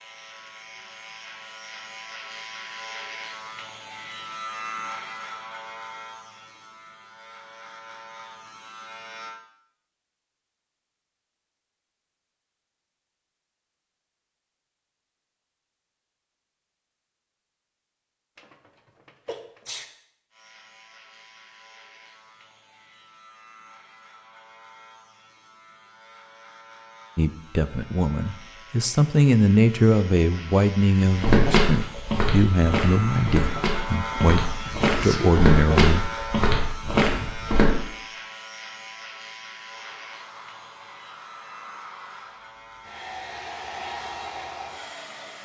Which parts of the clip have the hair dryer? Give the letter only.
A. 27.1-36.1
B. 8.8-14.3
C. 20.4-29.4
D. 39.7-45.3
D.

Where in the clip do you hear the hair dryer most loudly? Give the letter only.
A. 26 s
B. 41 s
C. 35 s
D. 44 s
D.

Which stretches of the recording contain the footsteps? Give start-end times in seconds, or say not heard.
31.1-37.7.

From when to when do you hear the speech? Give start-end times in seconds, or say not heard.
27.1-36.1.